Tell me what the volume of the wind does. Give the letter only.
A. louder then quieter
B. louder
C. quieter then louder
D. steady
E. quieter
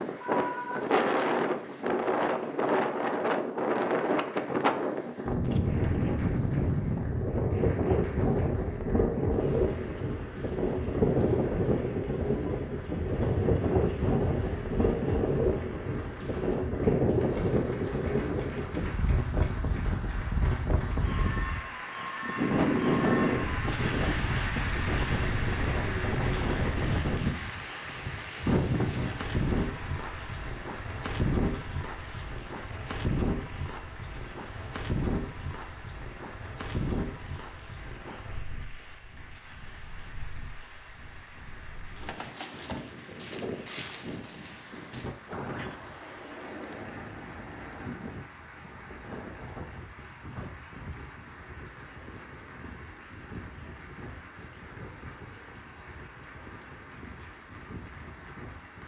E.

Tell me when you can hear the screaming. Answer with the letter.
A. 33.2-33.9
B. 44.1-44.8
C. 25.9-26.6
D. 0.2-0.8
D.